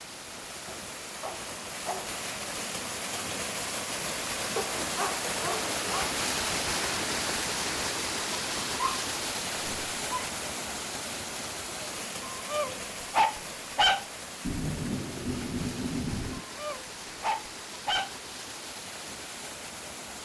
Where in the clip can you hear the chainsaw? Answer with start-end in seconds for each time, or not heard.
not heard.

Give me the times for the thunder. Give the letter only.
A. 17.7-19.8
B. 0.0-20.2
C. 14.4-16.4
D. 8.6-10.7
C.